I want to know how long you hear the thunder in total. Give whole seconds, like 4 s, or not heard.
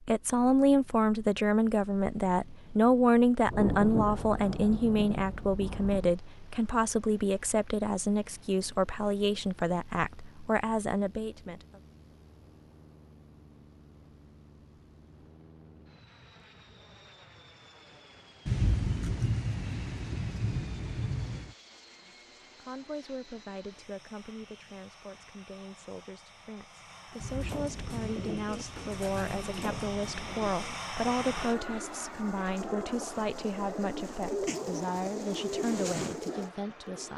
9 s.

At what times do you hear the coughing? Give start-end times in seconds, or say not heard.
not heard.